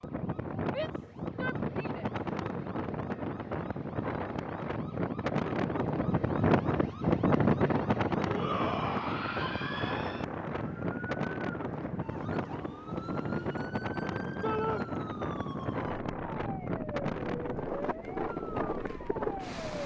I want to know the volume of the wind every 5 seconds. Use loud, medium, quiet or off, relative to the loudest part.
medium, loud, medium, medium.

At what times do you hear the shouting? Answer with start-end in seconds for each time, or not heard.
0.7-2.1, 8.2-10.2, 14.4-14.8.